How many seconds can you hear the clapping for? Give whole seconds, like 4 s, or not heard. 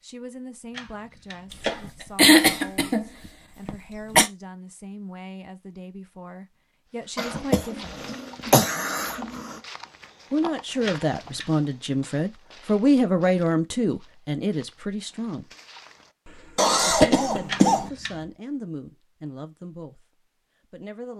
not heard.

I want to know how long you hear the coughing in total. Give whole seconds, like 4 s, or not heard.
6 s.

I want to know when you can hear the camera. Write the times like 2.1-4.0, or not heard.
0.7-1.9, 10.8-11.5, 17.4-18.2.